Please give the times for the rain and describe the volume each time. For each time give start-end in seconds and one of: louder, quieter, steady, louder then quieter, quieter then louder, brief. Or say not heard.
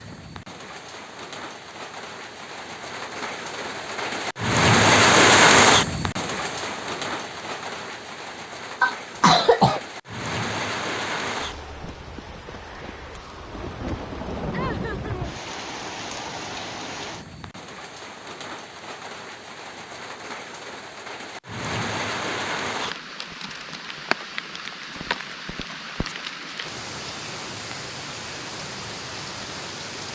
0.0-30.1 quieter.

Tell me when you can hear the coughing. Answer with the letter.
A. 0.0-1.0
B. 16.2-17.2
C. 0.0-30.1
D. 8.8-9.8
D.